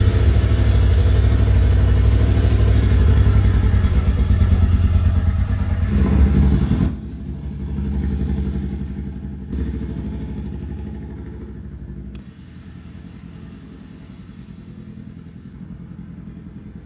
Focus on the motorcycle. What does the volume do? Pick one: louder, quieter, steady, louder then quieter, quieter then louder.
quieter.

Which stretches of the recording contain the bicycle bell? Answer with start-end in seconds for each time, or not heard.
0.7-1.4, 12.2-12.8.